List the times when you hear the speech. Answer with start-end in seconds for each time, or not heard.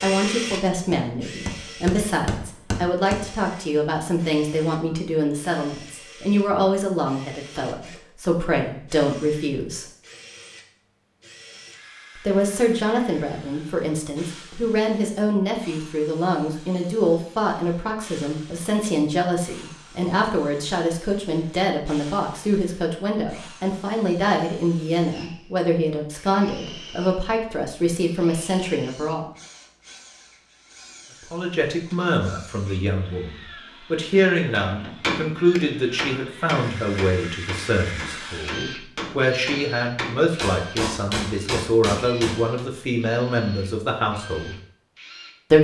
0.0-9.8, 12.2-29.2, 31.3-44.5.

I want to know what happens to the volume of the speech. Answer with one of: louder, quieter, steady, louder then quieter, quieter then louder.
steady.